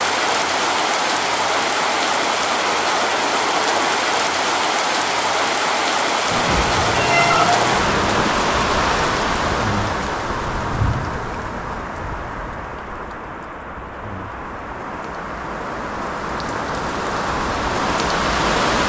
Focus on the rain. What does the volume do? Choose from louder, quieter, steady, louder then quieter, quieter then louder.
quieter then louder.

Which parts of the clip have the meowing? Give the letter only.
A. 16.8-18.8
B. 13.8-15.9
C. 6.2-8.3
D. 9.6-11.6
C.